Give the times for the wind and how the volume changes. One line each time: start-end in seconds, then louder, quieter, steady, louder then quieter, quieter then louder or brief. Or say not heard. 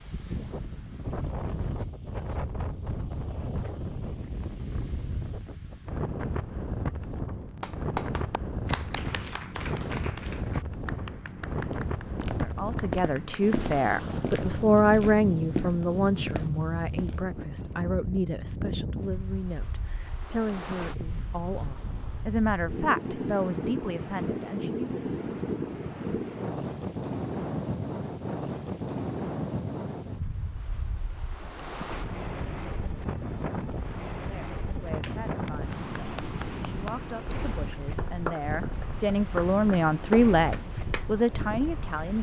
0.0-42.1 steady.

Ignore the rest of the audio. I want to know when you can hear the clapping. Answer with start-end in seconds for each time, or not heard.
7.6-13.8, 35.0-41.1.